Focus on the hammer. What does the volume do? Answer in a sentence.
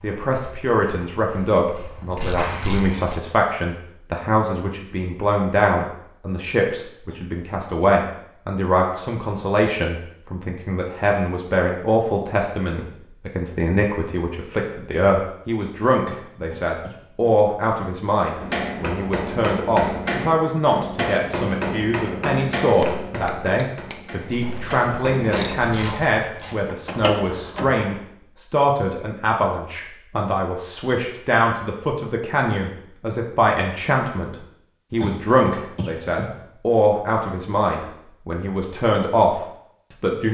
The volume of the hammer goes down.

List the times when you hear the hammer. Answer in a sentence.
You can hear the hammer from 18.4 to 25.6 s.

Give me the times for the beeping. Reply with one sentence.
The beeping can't be heard in this clip.